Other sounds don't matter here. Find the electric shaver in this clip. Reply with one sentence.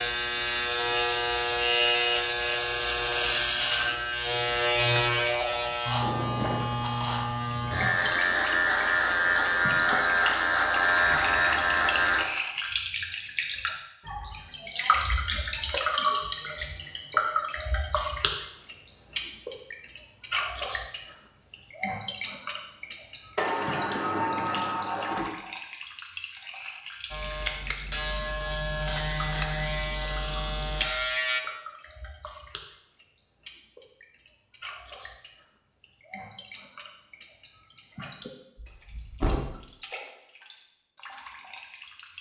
The electric shaver can be heard from 0.0 to 12.2 s and from 27.1 to 31.4 s.